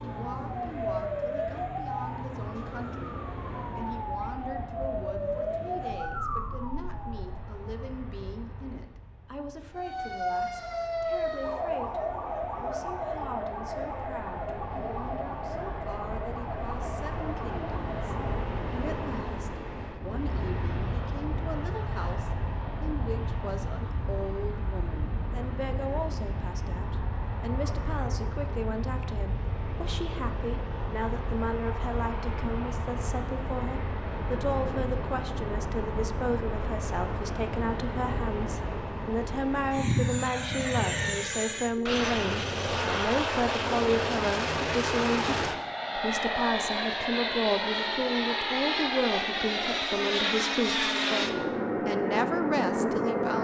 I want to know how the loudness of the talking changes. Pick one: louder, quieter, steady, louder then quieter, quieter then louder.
louder.